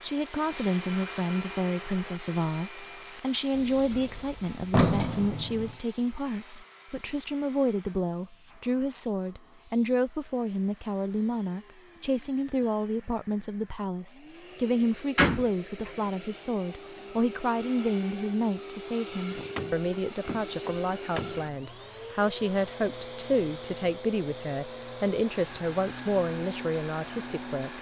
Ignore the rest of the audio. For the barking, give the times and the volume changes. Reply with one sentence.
You can't hear the barking here.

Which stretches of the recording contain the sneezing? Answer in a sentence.
You can't hear the sneezing here.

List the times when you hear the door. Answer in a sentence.
The door can be heard from 3.5 to 5.8 s, from 15.2 to 15.9 s and from 19.3 to 21.4 s.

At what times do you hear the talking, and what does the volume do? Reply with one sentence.
The talking can be heard from 0.0 to 27.7 s, at a steady volume.